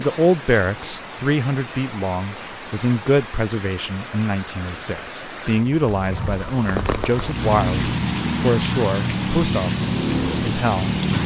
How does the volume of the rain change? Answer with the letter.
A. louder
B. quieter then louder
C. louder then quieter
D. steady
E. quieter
A.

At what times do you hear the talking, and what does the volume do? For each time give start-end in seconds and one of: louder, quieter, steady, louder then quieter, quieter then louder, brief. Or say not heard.
0.0-11.2 steady.